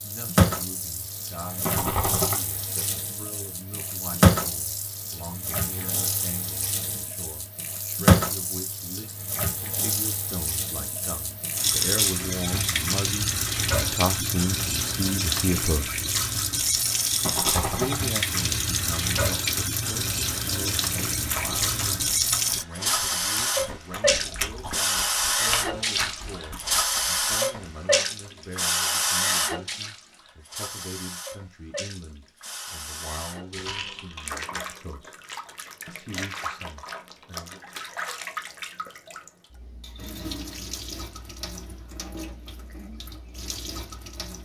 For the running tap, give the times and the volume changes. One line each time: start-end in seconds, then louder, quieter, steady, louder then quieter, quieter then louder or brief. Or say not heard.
0.0-44.4 quieter.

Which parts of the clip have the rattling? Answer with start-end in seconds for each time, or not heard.
1.6-2.4, 17.2-18.0, 33.5-34.3.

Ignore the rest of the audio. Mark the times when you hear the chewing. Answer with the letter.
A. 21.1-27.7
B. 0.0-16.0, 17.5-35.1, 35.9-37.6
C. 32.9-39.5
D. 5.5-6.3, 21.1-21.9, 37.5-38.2
A.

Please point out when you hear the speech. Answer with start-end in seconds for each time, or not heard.
0.0-16.0, 17.5-35.1, 35.9-37.6.